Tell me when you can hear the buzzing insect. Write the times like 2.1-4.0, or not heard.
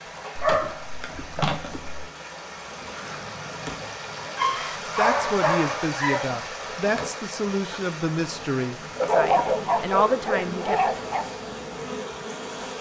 0.0-12.7.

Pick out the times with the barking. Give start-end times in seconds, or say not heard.
0.3-2.1, 4.3-6.2, 9.0-11.2.